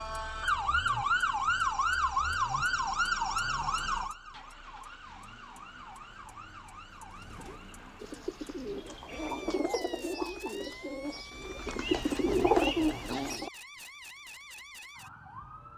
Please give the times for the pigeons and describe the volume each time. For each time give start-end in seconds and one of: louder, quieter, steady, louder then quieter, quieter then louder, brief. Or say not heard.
7.1-13.5 louder.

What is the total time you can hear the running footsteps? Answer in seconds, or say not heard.
not heard.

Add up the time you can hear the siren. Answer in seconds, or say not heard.
16 s.